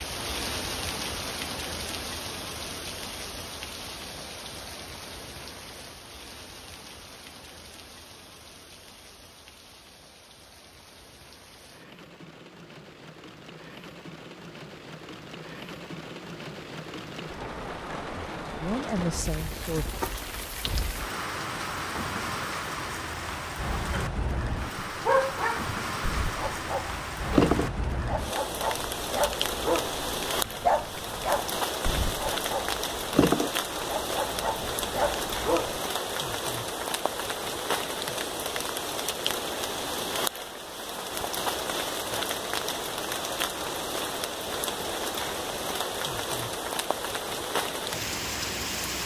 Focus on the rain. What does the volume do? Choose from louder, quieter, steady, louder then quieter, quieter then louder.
louder.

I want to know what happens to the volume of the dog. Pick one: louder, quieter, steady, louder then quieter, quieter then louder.
steady.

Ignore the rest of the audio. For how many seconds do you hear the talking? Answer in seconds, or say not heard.
2 s.